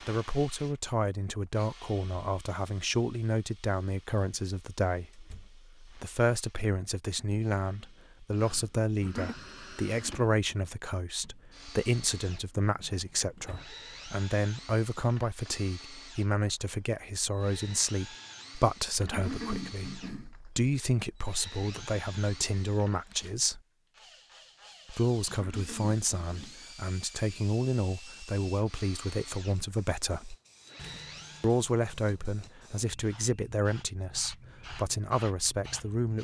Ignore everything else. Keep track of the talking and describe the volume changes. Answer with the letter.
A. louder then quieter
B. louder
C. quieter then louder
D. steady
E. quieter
D.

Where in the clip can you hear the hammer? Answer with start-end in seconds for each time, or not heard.
not heard.